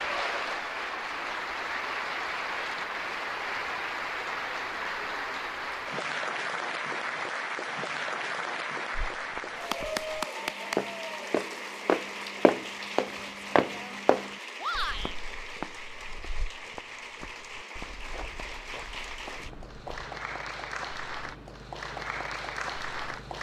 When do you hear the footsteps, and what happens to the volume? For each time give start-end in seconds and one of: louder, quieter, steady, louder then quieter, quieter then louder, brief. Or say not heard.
9.2-20.1 louder then quieter.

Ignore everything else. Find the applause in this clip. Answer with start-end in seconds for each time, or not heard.
0.0-23.3.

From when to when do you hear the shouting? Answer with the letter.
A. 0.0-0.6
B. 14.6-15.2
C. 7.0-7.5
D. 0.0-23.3
B.